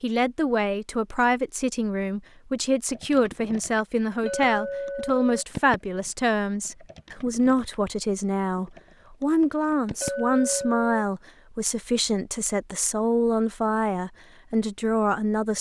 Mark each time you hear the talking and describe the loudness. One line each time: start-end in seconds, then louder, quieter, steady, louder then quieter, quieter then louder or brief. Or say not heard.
0.0-15.5 steady.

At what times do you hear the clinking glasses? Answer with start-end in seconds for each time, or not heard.
4.2-5.5, 10.0-11.1.